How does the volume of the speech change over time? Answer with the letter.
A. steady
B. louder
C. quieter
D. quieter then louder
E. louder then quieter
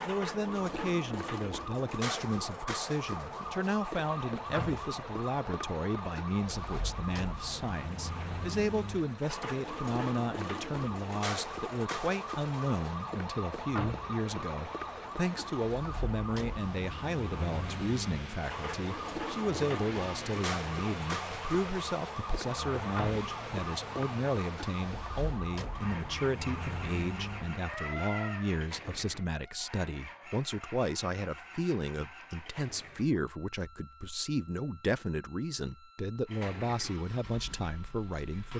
A.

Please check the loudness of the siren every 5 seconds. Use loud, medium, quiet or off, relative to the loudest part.
loud, loud, loud, loud, loud, loud, quiet, quiet.